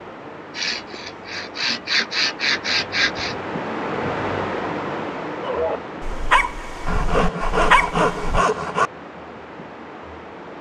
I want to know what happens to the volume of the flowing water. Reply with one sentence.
The volume of the flowing water goes up, then down.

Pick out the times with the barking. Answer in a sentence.
You can hear the barking from 5.4 to 8.4 s.